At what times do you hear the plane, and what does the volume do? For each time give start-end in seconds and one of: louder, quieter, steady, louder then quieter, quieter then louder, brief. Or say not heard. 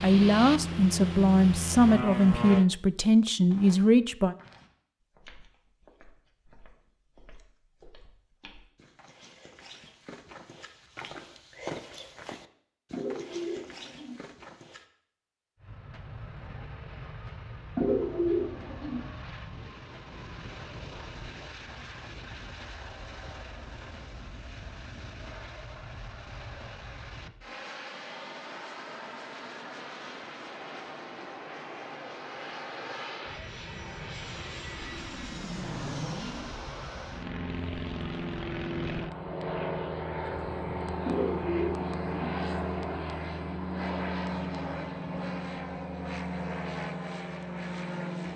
0.0-2.6 brief
15.6-48.3 louder.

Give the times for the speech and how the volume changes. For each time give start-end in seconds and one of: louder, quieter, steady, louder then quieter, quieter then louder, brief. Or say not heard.
0.0-4.3 steady.